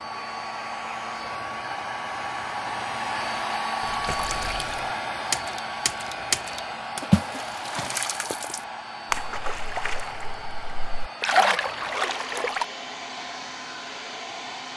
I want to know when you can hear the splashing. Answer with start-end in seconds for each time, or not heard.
3.8-12.7.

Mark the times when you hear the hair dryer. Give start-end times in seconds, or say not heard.
0.0-14.7.